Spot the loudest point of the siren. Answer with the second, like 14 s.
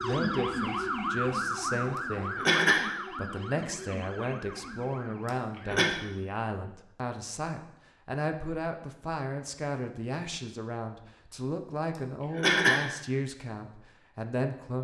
1 s.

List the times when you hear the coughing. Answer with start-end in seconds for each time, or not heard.
1.9-3.0, 5.2-5.9, 11.9-12.9.